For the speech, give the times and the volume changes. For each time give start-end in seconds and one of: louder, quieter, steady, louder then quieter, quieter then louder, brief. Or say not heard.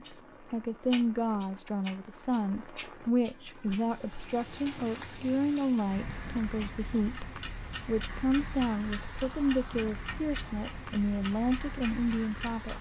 0.0-12.7 steady.